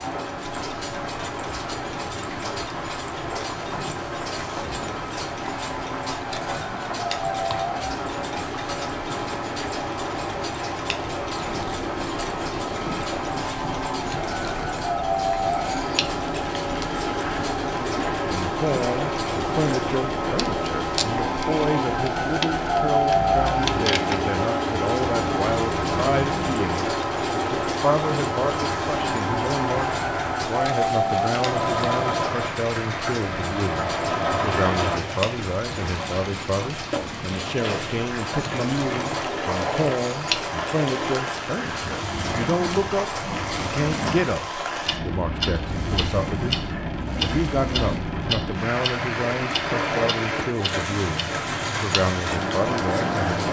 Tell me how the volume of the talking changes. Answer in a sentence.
The volume of the talking stays about the same.